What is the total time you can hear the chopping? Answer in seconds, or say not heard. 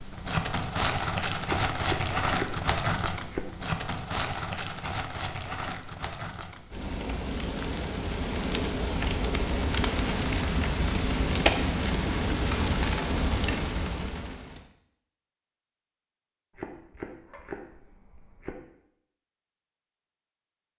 4 s.